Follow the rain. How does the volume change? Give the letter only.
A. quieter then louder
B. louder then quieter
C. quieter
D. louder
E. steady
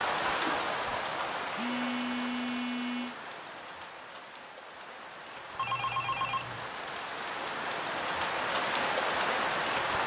A.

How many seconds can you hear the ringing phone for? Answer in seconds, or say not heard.
3 s.